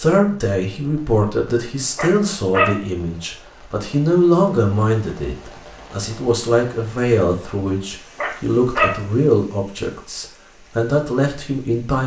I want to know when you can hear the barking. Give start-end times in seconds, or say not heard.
1.9-2.8, 8.2-8.9.